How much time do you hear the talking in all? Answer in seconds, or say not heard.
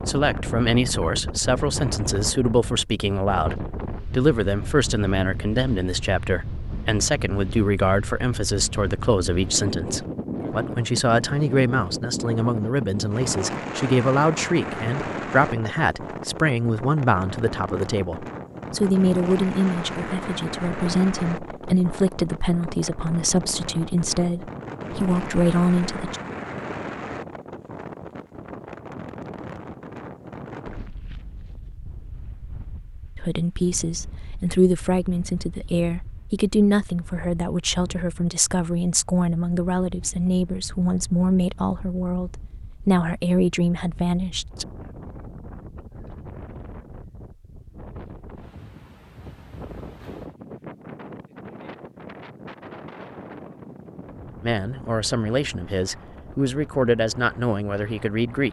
42 s.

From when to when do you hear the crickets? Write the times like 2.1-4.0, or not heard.
not heard.